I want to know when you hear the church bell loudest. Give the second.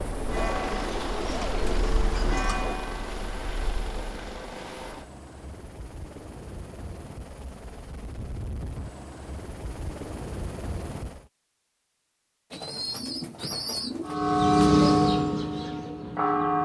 15 s.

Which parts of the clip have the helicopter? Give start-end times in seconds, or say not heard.
0.0-11.3.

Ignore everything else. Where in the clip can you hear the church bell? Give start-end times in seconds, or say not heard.
0.1-4.2, 14.1-16.6.